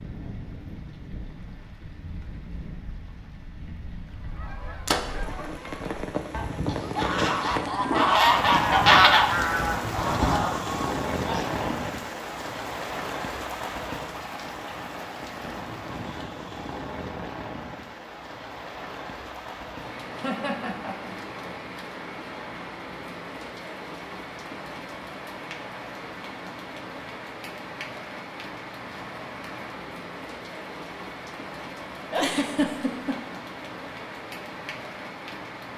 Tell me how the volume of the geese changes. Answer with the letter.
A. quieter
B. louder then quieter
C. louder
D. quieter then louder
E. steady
B.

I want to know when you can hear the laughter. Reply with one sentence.
The laughter can be heard from 6.7 to 8.0 s, from 20.1 to 21.1 s and from 32.1 to 33.1 s.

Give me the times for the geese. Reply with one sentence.
The geese can be heard from 4.2 to 11.9 s.